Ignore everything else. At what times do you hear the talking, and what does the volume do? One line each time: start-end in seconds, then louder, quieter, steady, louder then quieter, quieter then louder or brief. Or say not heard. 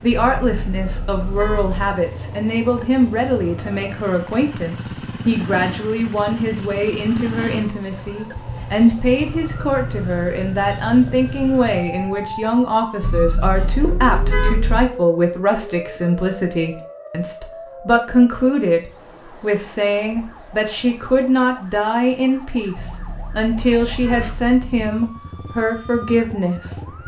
0.0-26.8 steady.